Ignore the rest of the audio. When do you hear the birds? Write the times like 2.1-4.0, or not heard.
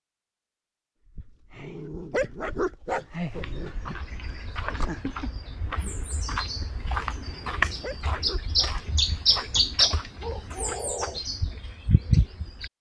3.3-12.7.